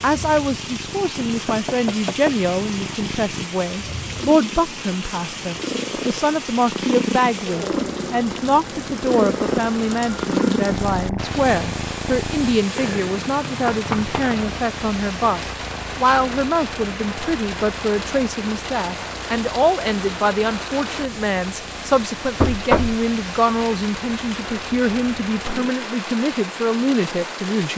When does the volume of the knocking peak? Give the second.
23 s.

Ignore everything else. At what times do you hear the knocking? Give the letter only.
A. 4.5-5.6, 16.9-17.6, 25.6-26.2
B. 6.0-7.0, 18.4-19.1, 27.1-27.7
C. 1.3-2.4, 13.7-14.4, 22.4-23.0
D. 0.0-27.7
C.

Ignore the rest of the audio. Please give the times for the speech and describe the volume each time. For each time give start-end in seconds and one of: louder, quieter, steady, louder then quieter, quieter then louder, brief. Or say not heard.
0.0-27.7 steady.